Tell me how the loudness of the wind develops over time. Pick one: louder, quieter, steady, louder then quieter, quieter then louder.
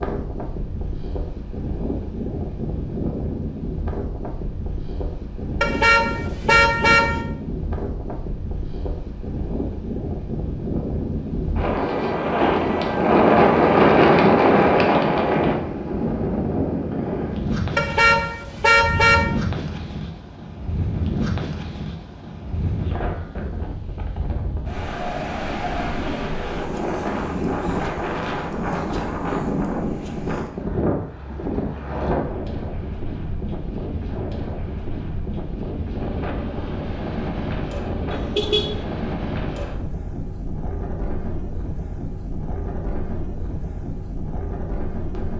louder then quieter.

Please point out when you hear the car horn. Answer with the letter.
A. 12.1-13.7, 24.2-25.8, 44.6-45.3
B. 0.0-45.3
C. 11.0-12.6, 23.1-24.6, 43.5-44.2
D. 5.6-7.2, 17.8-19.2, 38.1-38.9
D.